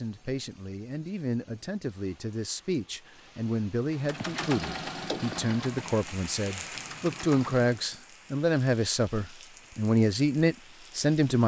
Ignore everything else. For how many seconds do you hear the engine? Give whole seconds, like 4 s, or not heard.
4 s.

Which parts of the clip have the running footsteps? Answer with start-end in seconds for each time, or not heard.
not heard.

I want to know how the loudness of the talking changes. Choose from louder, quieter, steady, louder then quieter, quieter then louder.
louder.